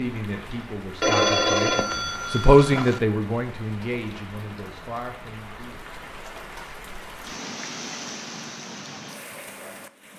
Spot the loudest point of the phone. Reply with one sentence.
The loudest moment of the phone is at 1 second.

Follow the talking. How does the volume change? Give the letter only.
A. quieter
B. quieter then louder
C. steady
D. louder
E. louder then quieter
E.